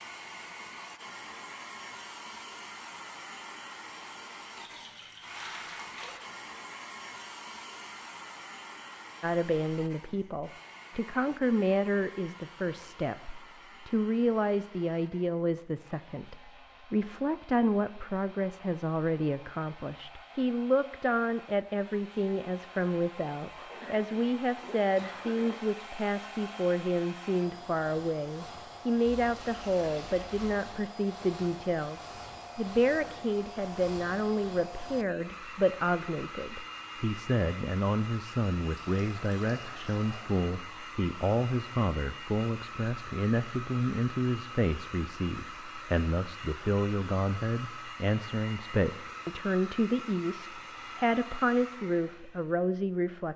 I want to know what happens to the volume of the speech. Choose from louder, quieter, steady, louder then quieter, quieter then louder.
steady.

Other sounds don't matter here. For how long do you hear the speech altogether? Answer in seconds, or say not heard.
44 s.